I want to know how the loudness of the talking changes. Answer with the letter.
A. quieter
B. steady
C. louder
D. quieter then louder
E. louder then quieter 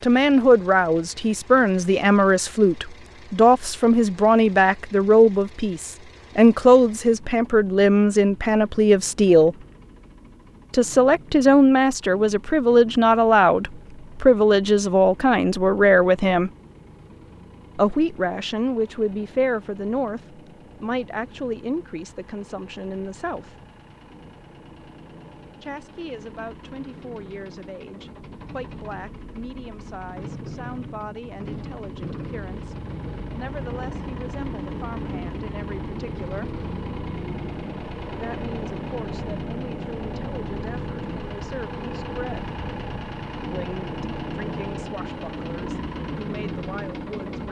A.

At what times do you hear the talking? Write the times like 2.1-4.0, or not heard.
0.0-9.6, 10.7-16.5, 17.8-23.6, 25.6-36.5, 38.1-42.5, 43.5-47.4.